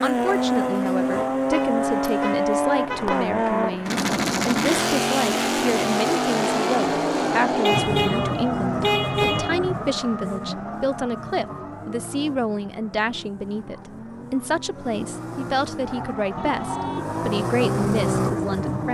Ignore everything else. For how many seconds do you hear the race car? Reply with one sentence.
The race car can be heard for 19 seconds in total.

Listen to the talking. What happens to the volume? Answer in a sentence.
The loudness of the talking stays about the same.